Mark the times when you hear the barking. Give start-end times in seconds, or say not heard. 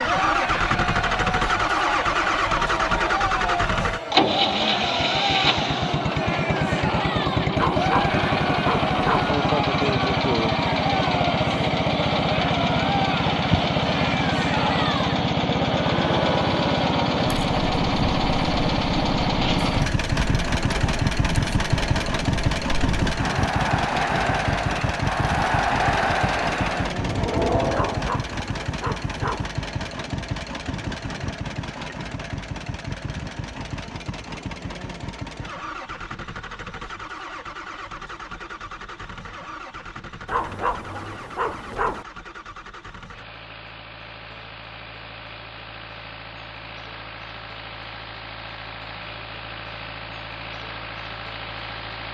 7.5-9.3, 27.7-29.5, 40.2-42.0.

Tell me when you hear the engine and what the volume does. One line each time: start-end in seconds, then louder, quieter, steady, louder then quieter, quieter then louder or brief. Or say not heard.
0.0-52.0 quieter.